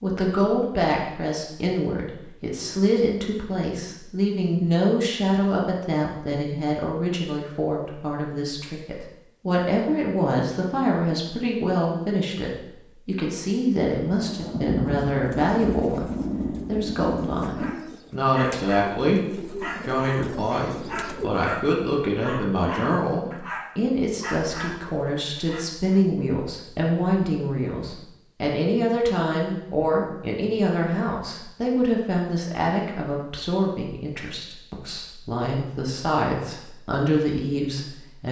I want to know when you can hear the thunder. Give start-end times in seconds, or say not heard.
14.1-17.8.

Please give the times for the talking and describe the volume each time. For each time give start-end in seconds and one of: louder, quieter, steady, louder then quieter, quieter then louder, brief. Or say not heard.
0.0-38.2 steady.